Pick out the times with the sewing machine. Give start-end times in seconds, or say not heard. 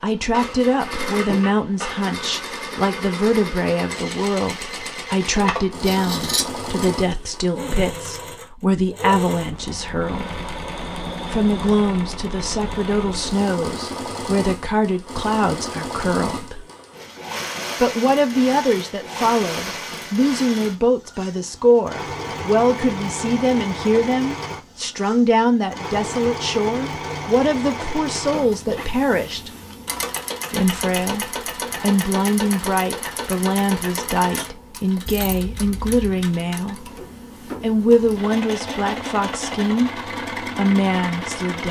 0.0-41.6.